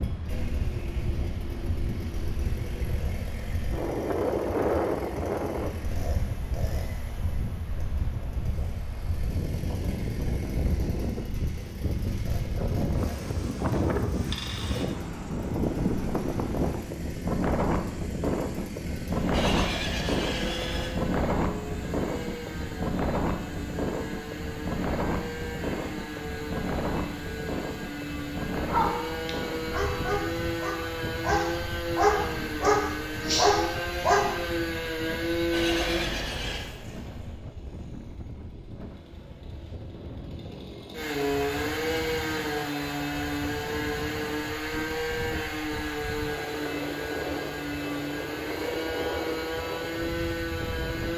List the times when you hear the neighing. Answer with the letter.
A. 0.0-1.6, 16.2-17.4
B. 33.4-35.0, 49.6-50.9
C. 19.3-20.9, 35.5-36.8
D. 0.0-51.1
C.